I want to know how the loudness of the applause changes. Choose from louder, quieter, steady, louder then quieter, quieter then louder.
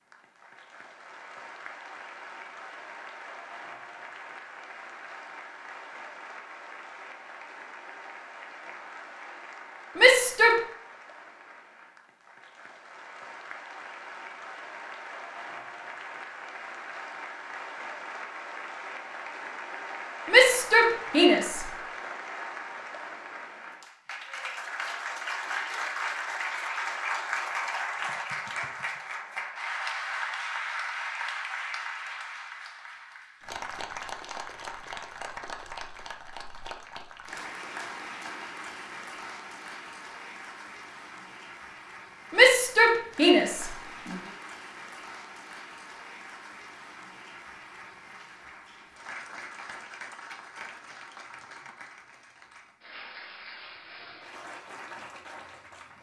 louder then quieter.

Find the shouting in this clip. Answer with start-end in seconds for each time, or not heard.
9.9-10.6, 20.3-21.6, 42.3-43.7.